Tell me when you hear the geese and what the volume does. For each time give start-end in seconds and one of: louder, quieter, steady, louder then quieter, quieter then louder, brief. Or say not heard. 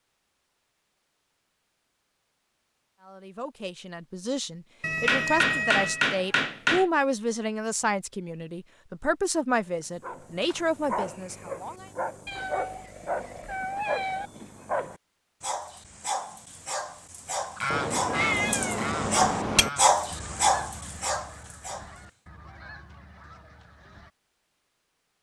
17.4-24.1 quieter.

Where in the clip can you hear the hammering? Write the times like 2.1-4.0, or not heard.
5.0-6.8, 19.1-20.6.